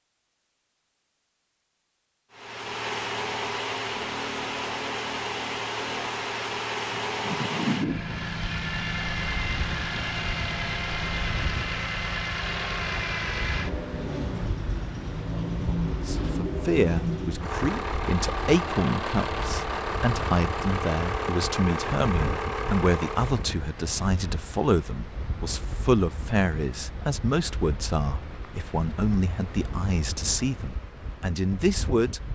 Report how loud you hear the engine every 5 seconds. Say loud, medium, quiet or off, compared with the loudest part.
loud, loud, loud, loud, loud, off, off.